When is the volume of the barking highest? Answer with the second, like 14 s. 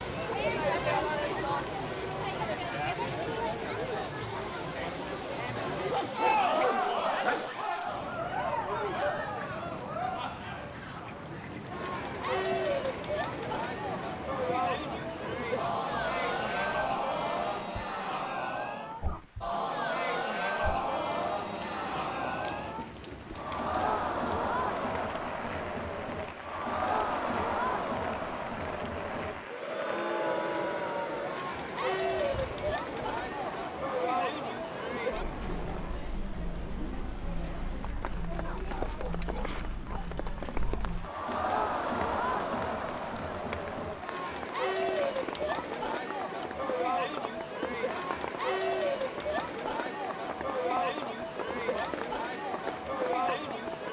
7 s.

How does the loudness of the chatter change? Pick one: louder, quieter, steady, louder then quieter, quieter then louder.
steady.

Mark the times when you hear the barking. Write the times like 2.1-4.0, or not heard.
5.5-7.5, 38.4-40.1.